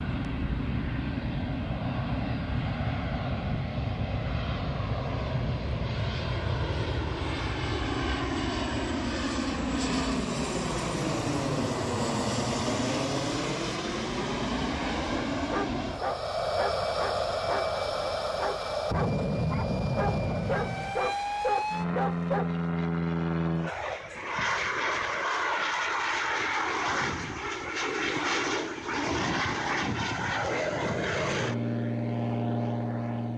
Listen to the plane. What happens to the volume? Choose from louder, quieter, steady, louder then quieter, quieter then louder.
steady.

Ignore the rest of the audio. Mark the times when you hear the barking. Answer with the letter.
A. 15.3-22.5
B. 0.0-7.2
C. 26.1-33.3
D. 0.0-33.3
A.